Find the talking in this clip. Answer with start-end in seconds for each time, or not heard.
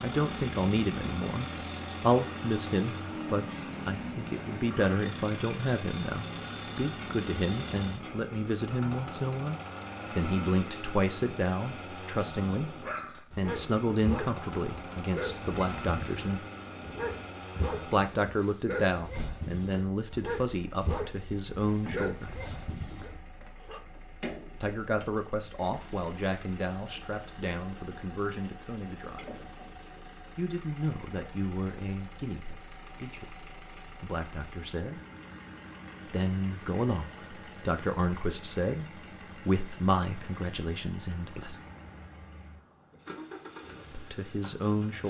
0.0-16.4, 17.9-22.3, 24.6-29.4, 30.4-35.0, 36.0-41.6, 43.9-45.0.